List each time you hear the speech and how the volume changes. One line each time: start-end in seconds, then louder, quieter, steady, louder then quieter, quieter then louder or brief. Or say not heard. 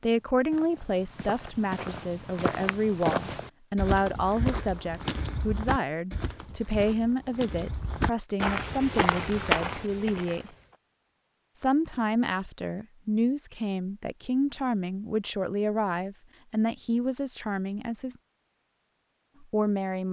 0.0-10.5 steady
11.6-18.1 steady
19.4-20.0 brief.